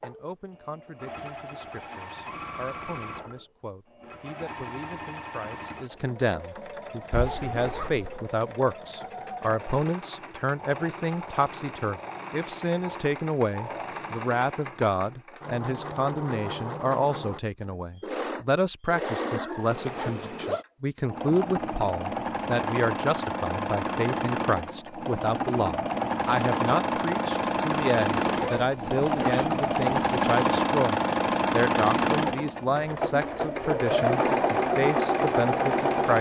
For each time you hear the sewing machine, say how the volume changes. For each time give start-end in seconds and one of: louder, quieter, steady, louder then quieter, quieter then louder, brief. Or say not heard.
0.0-36.1 louder.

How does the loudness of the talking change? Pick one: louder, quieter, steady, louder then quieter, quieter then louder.
louder.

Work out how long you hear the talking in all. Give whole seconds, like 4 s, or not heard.
36 s.